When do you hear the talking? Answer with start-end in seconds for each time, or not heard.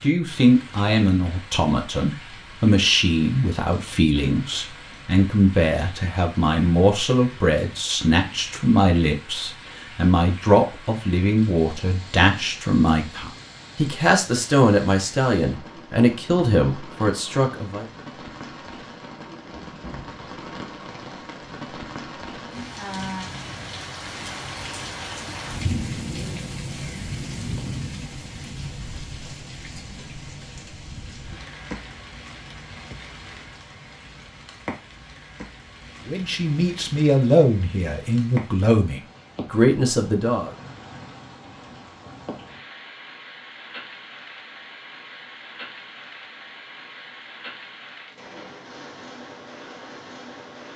0.0-17.9, 36.0-40.5.